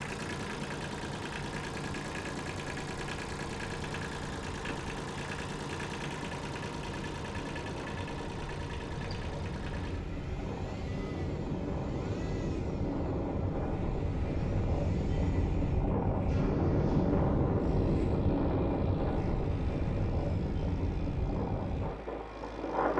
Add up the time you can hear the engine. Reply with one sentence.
You can hear the engine for 23 seconds altogether.